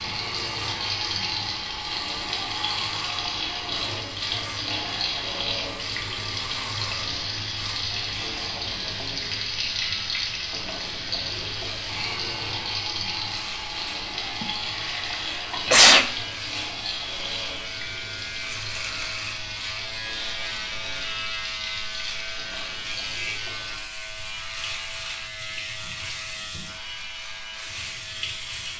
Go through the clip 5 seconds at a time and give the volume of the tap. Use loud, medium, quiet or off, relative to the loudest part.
loud, loud, loud, medium, medium, medium.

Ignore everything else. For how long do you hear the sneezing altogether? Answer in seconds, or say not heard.
2 s.